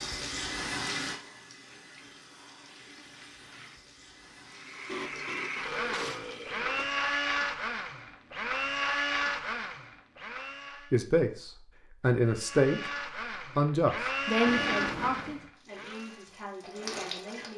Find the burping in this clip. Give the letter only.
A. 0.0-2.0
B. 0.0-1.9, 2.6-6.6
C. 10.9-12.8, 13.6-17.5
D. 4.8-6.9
D.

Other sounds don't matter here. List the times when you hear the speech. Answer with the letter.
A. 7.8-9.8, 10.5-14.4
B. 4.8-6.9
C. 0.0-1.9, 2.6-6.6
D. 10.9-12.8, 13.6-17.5
D.